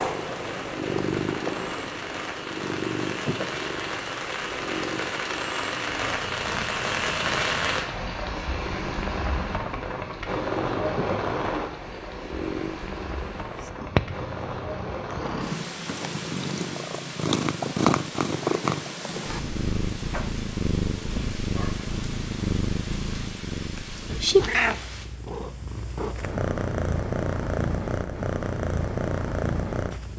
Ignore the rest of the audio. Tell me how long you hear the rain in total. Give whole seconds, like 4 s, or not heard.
25 s.